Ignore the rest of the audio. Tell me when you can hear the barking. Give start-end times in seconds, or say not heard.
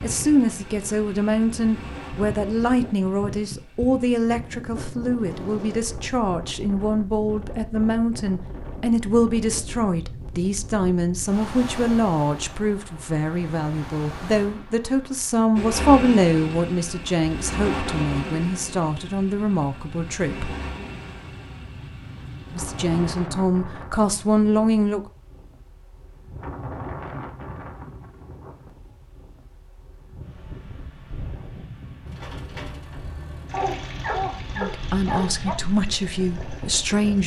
33.5-35.5.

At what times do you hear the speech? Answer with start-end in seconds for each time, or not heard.
0.0-20.6, 22.6-25.0, 34.5-37.2.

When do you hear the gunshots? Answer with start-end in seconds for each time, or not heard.
not heard.